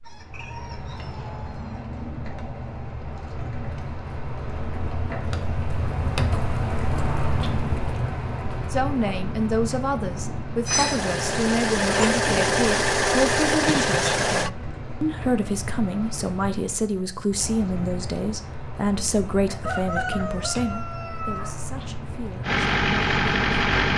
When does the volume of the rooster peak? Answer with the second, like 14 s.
20 s.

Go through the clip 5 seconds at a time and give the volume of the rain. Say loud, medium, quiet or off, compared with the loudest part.
medium, loud, medium, medium, medium.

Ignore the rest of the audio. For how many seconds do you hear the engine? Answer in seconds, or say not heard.
5 s.